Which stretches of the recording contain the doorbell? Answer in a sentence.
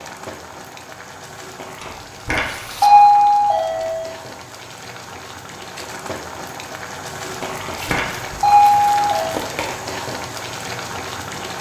The doorbell can be heard from 1.8 to 4.1 s and from 7.4 to 9.3 s.